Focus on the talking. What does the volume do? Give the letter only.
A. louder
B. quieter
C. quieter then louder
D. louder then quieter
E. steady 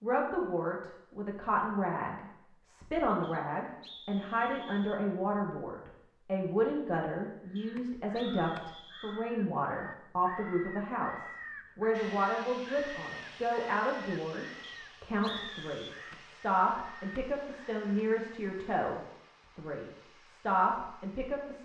E.